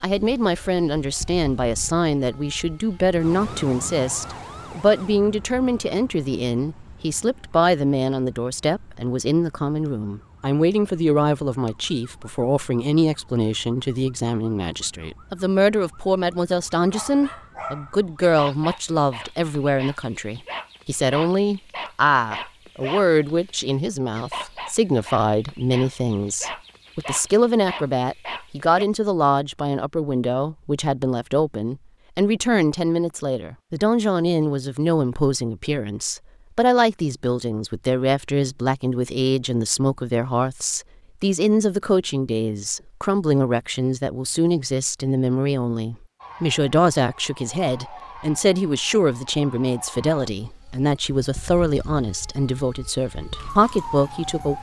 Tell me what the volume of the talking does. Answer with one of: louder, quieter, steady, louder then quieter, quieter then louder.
steady.